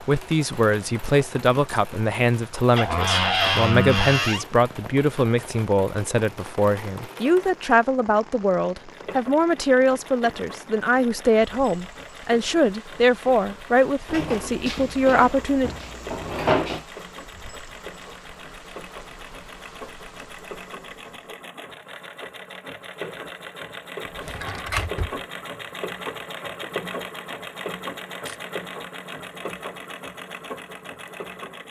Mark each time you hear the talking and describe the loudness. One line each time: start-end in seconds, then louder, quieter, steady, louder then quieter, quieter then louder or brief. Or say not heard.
0.1-15.8 steady.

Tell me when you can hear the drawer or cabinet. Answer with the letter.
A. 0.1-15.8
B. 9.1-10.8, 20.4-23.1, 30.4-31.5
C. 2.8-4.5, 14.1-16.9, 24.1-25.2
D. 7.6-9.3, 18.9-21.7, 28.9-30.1
C.